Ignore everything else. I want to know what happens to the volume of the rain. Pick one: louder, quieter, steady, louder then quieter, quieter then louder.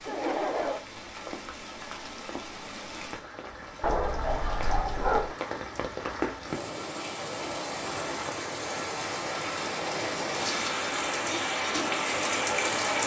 louder.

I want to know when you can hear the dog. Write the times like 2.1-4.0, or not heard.
3.8-5.3.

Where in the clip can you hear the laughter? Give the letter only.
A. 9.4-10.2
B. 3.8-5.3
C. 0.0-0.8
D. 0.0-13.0
C.